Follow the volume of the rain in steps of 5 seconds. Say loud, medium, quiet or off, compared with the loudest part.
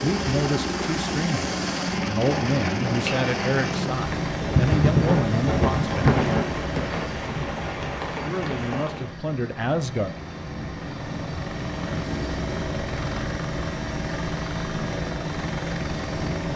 loud, loud, off, off.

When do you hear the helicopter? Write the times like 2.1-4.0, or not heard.
0.0-16.5.